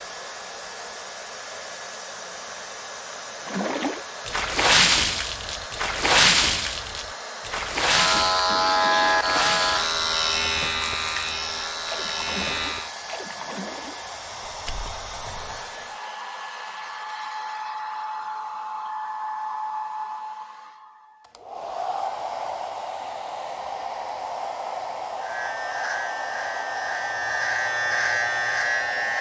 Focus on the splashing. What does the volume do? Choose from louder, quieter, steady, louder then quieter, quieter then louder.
quieter.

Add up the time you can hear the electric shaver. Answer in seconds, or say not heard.
9 s.